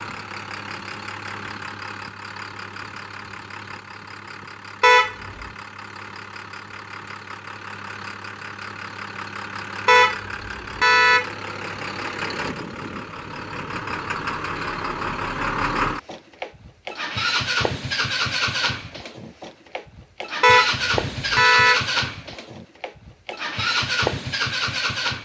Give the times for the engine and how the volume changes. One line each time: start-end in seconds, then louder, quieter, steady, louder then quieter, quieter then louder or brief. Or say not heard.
0.0-25.2 louder.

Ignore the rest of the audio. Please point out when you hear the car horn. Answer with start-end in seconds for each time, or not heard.
4.8-5.5, 9.8-11.2, 20.4-21.8.